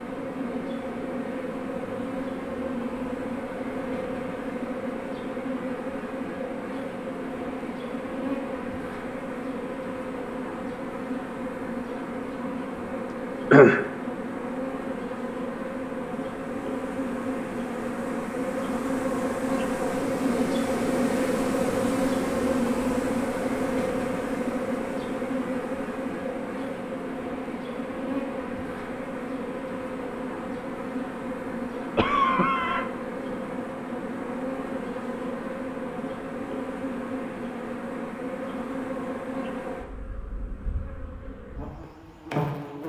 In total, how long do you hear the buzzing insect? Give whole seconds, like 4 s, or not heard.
43 s.